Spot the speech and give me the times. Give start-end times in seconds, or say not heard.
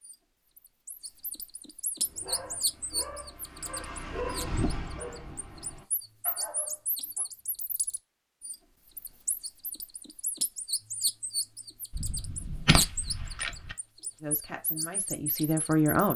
14.2-16.1.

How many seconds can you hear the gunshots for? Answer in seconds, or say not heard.
2 s.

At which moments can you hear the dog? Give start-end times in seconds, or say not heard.
2.0-7.2.